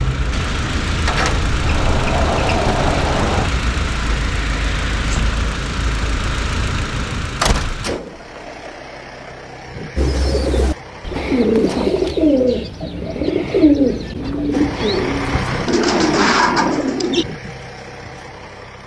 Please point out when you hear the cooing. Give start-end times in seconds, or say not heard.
9.9-17.2.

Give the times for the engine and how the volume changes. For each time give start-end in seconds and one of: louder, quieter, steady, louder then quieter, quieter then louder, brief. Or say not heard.
0.0-11.9 quieter
14.5-18.8 quieter.